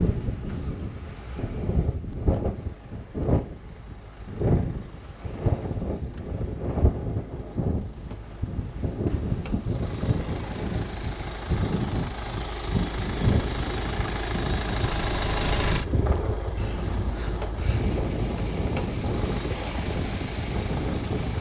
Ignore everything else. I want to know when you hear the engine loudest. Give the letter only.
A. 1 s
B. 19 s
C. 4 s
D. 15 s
D.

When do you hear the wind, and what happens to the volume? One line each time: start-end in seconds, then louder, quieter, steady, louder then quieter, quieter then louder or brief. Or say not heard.
0.0-21.3 steady.